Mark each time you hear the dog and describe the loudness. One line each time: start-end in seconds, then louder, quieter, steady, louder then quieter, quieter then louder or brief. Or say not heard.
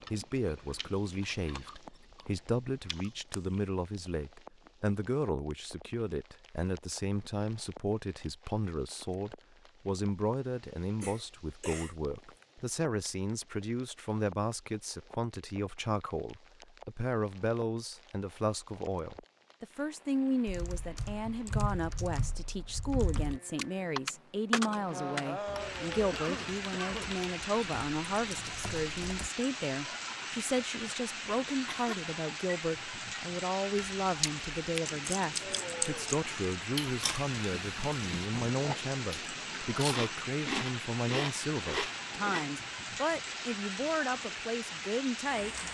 not heard.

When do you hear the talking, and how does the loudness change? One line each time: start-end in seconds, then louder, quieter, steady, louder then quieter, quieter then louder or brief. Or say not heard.
0.1-45.5 steady.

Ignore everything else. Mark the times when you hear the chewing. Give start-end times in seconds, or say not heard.
0.0-3.6, 33.8-42.6.